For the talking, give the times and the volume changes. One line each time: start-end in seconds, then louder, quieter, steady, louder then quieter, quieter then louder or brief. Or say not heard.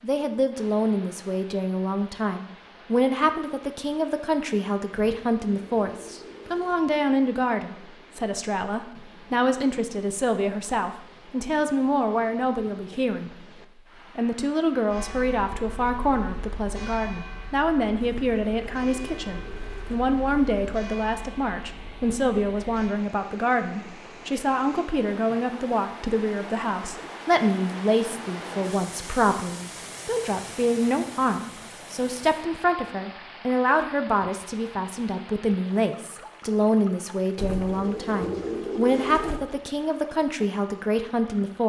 0.0-41.6 steady.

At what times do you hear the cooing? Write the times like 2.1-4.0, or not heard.
4.9-6.9, 18.0-20.0, 37.4-39.4.